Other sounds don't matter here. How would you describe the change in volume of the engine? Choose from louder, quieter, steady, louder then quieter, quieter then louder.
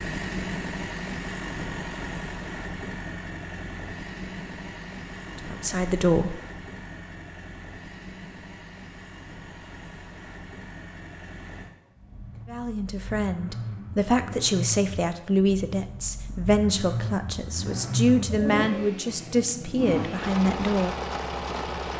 quieter then louder.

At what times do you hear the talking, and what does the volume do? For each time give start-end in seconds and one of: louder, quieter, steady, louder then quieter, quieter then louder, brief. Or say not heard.
5.3-6.3 brief
12.4-20.9 steady.